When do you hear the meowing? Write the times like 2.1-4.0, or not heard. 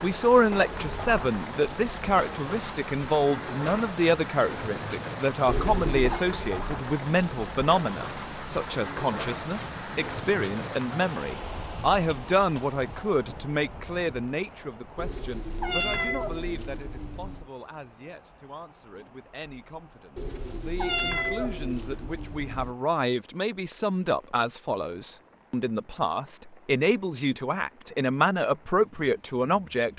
5.5-6.2, 14.9-17.4, 20.1-22.8.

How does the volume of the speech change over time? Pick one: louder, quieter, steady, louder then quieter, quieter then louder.
quieter then louder.